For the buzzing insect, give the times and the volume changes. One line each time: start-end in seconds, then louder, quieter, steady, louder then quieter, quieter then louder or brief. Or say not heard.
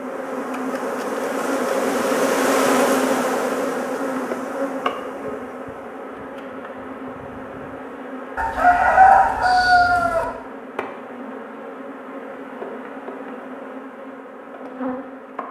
0.0-15.4 quieter.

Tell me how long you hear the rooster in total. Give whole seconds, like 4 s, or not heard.
2 s.